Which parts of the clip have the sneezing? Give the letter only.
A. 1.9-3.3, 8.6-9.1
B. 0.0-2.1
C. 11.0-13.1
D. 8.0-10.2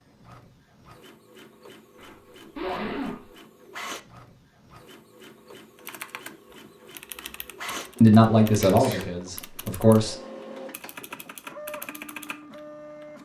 A.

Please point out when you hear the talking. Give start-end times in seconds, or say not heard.
8.0-10.2.